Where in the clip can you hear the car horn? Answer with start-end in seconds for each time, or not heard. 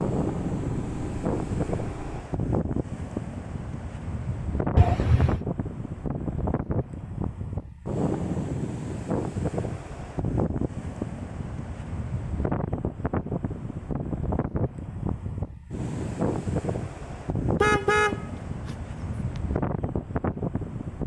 4.8-5.4, 17.6-19.4.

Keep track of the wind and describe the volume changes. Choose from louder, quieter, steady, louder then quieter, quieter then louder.
steady.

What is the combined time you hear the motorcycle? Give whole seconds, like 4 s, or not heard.
2 s.